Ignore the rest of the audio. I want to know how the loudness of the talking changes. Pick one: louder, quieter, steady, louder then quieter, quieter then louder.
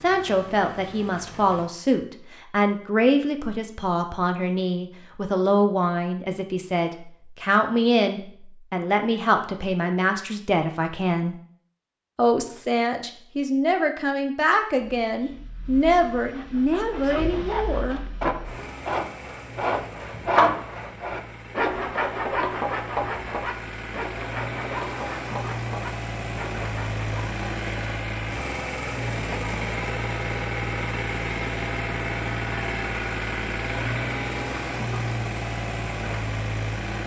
steady.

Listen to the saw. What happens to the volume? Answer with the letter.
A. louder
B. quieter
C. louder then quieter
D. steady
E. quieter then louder
C.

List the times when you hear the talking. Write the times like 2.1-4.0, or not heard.
0.0-11.3, 12.2-18.2.